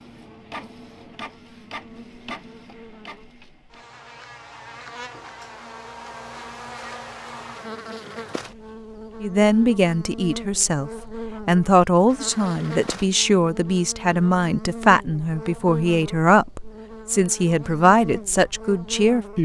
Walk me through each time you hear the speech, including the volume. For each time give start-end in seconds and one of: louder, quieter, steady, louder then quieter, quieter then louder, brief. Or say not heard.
9.2-19.4 steady.